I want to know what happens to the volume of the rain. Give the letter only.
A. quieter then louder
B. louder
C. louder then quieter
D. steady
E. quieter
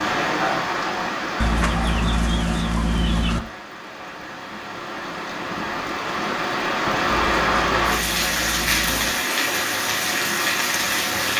A.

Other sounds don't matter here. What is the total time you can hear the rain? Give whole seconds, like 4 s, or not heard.
11 s.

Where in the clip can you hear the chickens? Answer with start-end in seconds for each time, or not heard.
1.4-3.4, 7.1-9.1.